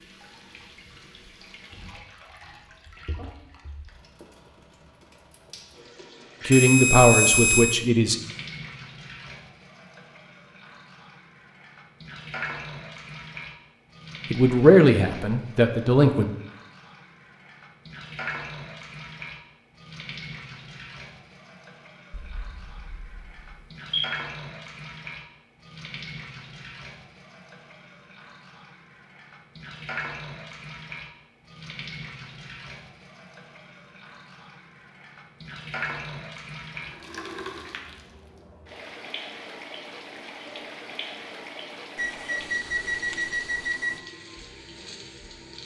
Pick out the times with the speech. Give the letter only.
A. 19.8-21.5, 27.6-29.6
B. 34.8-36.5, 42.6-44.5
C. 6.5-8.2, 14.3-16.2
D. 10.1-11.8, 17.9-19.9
C.